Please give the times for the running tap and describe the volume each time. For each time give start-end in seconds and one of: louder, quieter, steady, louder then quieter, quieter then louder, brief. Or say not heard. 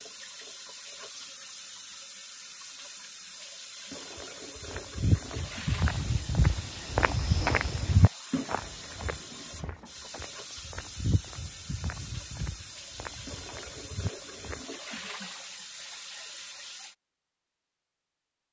0.0-16.9 steady.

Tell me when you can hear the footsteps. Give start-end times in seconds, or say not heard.
4.1-14.7.